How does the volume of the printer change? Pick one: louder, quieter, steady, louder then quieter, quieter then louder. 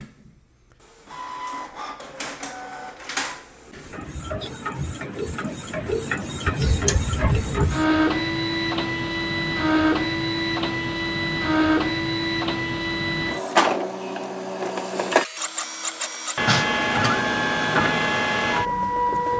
louder.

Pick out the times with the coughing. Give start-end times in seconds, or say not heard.
16.4-17.1.